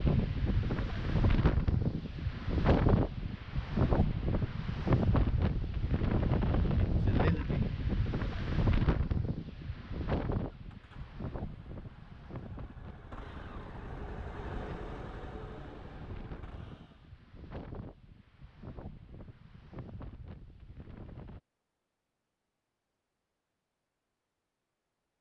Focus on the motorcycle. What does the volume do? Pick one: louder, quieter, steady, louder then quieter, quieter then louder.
louder then quieter.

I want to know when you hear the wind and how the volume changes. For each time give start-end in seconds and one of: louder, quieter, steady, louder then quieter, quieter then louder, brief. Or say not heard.
0.0-21.4 quieter.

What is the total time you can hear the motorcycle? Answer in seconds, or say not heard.
7 s.